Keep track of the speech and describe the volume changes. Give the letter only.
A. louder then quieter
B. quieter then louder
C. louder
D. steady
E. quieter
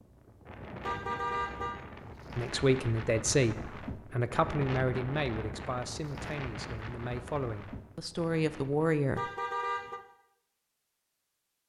B.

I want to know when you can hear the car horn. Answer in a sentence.
The car horn can be heard from 0.8 to 1.8 s and from 9.2 to 10.0 s.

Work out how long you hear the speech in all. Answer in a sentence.
You can hear the speech for 7 seconds altogether.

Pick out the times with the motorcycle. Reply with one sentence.
You can't hear the motorcycle here.